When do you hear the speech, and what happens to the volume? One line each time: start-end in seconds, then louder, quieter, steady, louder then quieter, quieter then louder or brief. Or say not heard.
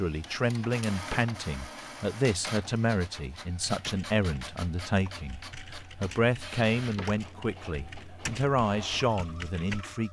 0.0-10.0 steady.